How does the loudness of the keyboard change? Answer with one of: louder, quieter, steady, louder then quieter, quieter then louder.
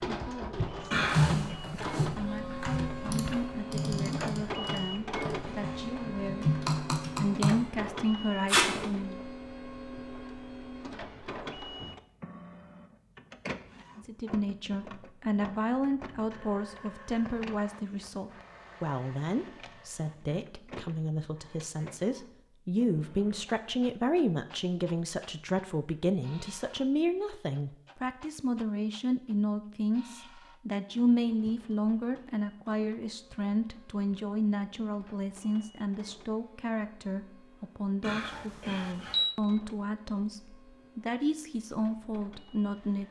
quieter then louder.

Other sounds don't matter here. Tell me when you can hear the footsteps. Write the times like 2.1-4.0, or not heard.
not heard.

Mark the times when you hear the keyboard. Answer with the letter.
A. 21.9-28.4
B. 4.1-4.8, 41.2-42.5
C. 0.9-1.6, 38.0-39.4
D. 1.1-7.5
D.